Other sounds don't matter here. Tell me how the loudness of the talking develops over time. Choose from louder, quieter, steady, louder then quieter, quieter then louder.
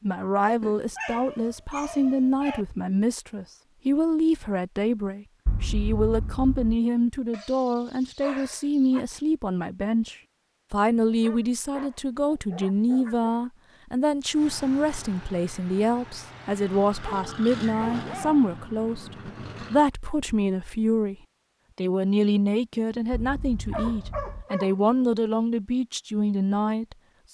steady.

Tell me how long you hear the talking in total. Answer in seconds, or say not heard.
26 s.